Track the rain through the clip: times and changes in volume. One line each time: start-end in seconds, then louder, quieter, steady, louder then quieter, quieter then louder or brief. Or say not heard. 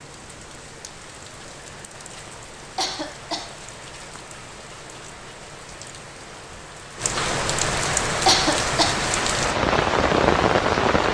0.0-11.0 louder.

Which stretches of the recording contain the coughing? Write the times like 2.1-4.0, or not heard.
2.8-3.5, 8.2-9.1.